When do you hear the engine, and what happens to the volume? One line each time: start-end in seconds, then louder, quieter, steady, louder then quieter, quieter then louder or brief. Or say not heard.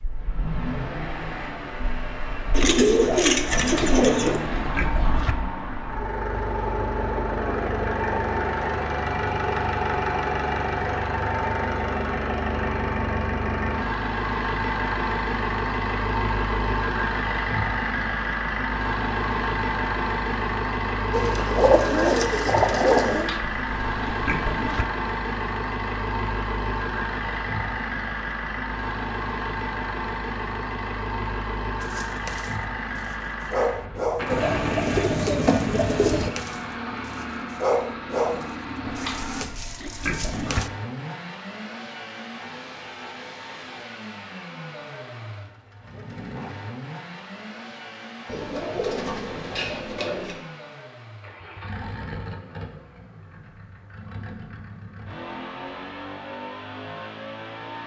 0.0-57.8 quieter.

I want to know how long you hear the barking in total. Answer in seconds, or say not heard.
9 s.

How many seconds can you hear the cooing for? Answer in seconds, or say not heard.
8 s.